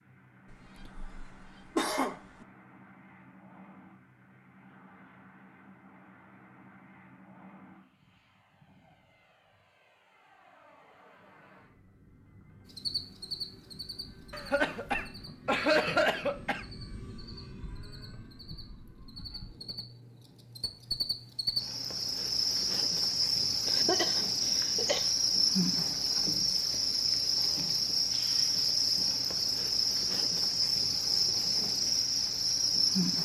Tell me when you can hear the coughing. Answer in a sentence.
You can hear the coughing from 0.5 to 2.5 s, from 14.3 to 16.6 s and from 23.6 to 25.1 s.